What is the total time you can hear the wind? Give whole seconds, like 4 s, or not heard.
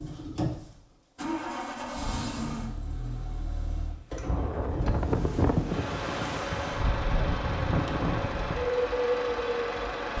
6 s.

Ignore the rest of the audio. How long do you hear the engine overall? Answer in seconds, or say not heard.
10 s.